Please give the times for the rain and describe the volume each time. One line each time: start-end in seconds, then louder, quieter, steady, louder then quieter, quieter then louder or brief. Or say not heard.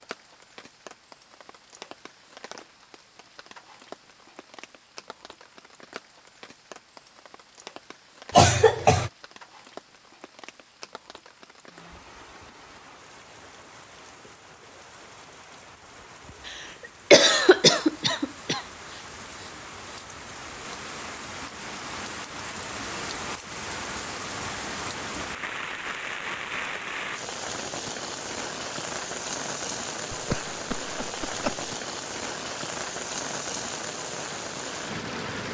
0.0-35.4 louder.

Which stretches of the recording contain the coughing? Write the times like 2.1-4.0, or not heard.
8.3-9.1, 16.4-18.6, 30.1-31.7.